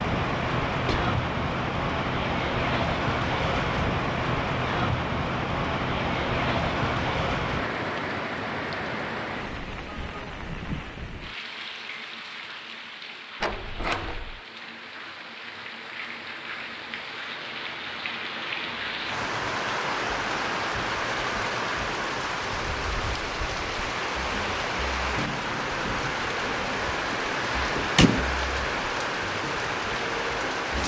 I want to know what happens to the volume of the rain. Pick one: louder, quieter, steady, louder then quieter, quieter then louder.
quieter then louder.